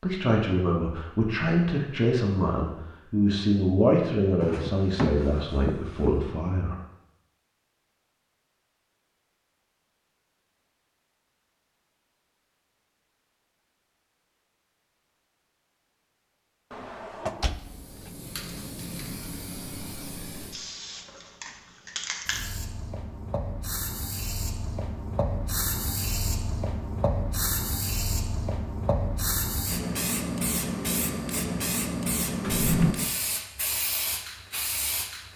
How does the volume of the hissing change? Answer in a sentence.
The loudness of the hissing goes up.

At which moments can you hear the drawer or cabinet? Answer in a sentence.
You can hear the drawer or cabinet from 4.4 to 6.1 s, from 16.7 to 17.9 s and from 32.4 to 33.0 s.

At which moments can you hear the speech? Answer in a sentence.
The speech can be heard from 0.0 to 6.8 s.